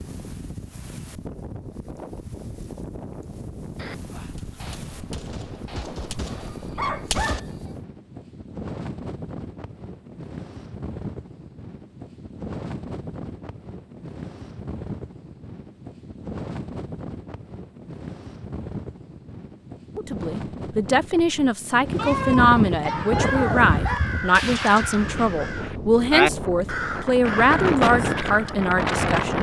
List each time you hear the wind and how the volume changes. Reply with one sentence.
The wind can be heard from 0.0 to 29.3 s, getting louder.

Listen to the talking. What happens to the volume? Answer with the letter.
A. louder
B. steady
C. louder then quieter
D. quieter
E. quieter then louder
B.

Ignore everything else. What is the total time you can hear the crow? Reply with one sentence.
You can hear the crow for 6 seconds altogether.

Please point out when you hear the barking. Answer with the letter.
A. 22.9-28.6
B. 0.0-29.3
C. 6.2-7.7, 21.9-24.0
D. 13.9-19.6
C.